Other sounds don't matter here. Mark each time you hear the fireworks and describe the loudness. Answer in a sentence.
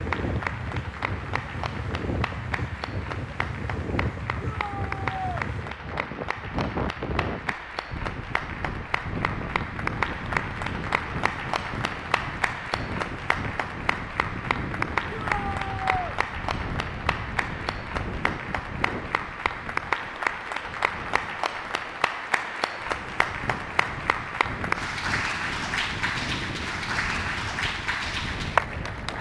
The fireworks can't be heard in this clip.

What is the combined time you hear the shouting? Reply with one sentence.
You can hear the shouting for 2 seconds altogether.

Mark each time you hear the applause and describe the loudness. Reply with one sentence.
The applause can be heard from 0.0 to 29.1 s, getting louder.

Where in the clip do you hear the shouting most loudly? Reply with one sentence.
The volume of the shouting peaks at 16 seconds.